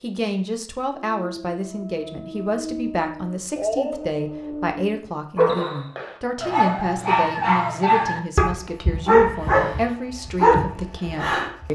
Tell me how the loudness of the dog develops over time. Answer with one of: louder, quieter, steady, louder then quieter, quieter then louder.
louder.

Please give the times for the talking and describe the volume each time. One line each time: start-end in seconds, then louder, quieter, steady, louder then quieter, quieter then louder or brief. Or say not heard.
0.0-11.7 steady.